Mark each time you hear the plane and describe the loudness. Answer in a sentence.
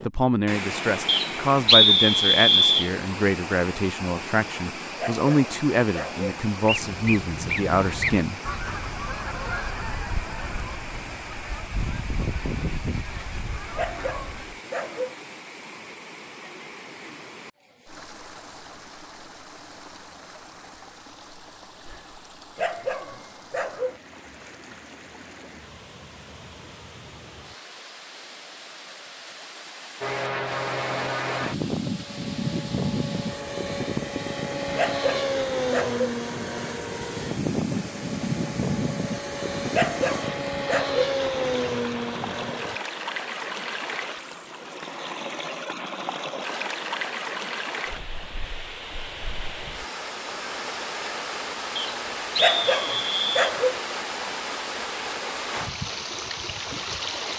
The plane can be heard from 30.0 to 42.8 s, at a steady volume.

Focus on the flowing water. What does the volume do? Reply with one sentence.
The volume of the flowing water goes down, then up.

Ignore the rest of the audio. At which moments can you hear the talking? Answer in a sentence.
The talking can be heard from 0.0 to 8.4 s.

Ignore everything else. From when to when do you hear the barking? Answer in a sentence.
You can hear the barking from 5.0 to 6.2 s, from 13.8 to 15.2 s, from 22.6 to 24.0 s, from 34.8 to 36.1 s, from 39.7 to 41.0 s and from 52.4 to 53.8 s.